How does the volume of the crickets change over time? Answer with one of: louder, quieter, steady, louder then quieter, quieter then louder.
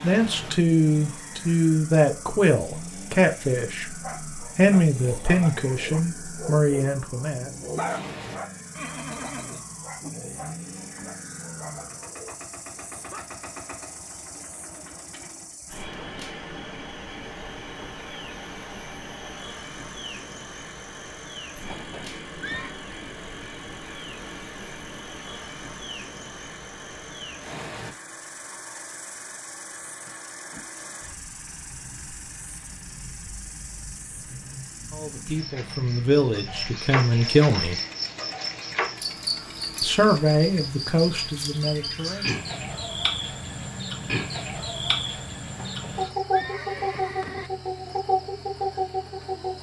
louder.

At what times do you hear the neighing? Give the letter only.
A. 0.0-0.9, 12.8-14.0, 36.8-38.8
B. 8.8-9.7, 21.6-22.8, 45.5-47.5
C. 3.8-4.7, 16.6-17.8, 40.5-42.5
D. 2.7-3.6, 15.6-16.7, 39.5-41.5
B.